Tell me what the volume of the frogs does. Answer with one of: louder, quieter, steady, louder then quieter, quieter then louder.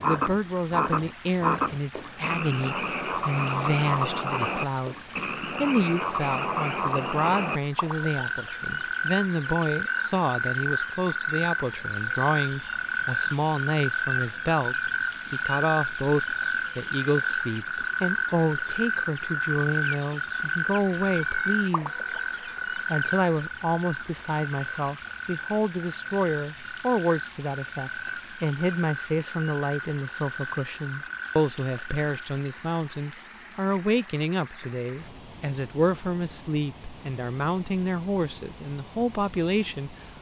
quieter.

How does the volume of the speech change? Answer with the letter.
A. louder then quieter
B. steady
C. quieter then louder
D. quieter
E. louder
B.